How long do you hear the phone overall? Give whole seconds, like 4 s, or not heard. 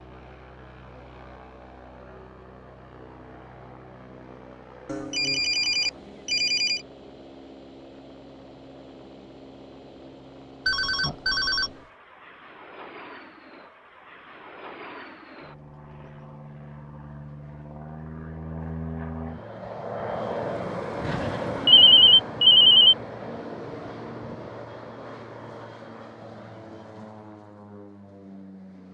5 s.